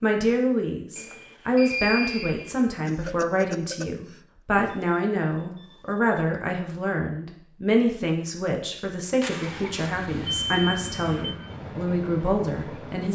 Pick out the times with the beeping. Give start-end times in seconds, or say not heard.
0.9-2.6, 4.5-6.2, 9.2-11.3.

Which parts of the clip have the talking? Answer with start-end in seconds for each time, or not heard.
0.0-13.1.